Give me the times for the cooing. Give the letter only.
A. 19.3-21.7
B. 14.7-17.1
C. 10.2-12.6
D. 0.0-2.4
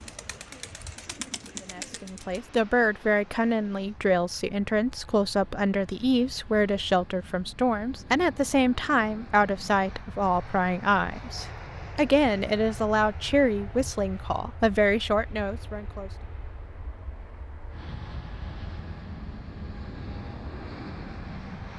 D.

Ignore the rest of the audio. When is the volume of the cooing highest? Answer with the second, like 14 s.
2 s.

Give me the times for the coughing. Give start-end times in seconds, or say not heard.
not heard.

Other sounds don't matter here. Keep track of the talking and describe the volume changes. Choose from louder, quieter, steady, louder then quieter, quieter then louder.
steady.